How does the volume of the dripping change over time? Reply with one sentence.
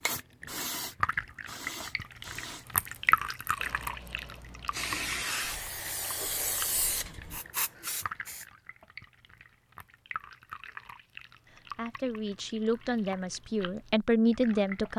The volume of the dripping goes down.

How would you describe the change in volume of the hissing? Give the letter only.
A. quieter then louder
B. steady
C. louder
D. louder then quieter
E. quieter
A.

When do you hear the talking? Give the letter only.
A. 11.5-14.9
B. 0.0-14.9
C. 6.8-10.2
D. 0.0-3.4
A.